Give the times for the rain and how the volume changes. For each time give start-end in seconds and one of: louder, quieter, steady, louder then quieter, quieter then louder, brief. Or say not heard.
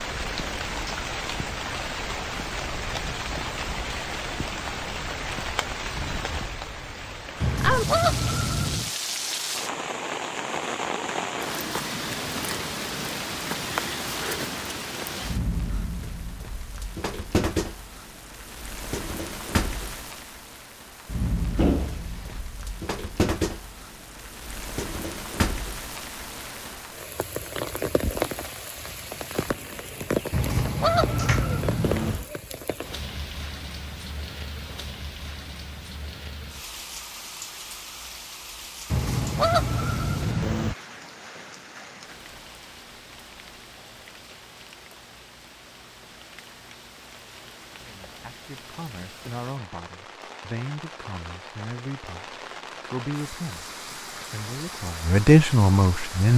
0.0-56.3 quieter.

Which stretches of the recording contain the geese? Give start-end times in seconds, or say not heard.
7.4-8.9, 30.3-32.2, 38.9-40.8.